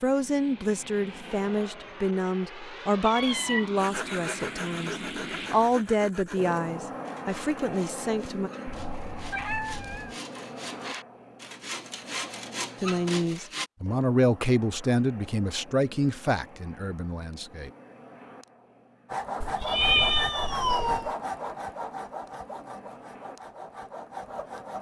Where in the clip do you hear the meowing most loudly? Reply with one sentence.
The volume of the meowing peaks at 20 seconds.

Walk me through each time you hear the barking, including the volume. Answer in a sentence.
You can't hear the barking here.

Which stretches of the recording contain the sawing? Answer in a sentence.
The sawing can be heard from 3.8 to 13.7 s and from 19.1 to 24.7 s.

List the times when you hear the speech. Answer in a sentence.
You can hear the speech from 0.0 to 8.5 s and from 12.8 to 17.7 s.